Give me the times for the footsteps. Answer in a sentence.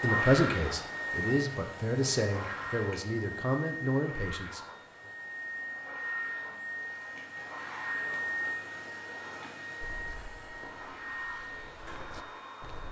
The footsteps can be heard from 9.8 to 12.8 s.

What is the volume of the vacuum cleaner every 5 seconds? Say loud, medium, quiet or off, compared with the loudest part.
loud, loud, medium.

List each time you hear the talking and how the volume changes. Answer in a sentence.
You can hear the talking from 0.0 to 5.1 s, at a steady volume.